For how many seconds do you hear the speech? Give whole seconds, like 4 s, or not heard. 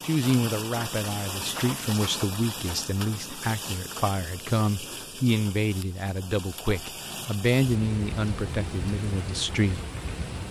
10 s.